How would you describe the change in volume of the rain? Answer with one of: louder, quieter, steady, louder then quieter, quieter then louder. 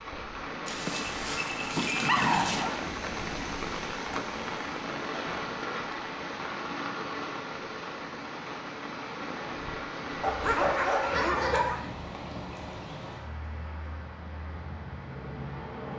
quieter.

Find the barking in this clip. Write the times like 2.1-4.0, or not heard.
0.7-2.8, 10.2-11.8.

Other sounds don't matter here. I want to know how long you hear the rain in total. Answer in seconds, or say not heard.
16 s.